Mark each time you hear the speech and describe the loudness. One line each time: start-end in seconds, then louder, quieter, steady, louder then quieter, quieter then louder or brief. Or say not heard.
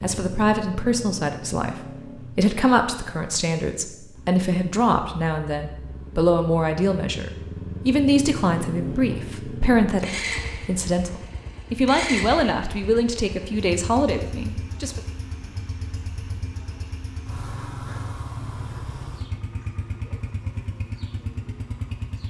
0.0-15.0 steady.